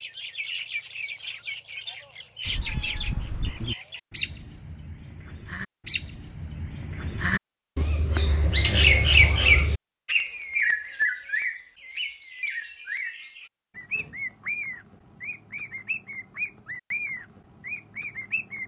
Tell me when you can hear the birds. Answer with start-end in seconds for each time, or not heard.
0.0-18.6.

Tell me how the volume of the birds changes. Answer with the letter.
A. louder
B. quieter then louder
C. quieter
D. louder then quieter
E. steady
D.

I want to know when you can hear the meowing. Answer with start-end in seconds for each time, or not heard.
2.5-3.8.